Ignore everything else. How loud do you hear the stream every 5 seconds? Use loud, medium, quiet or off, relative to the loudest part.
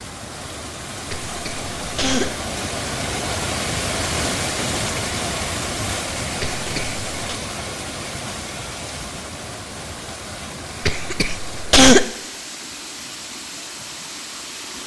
loud, loud, medium.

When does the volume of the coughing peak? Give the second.
12 s.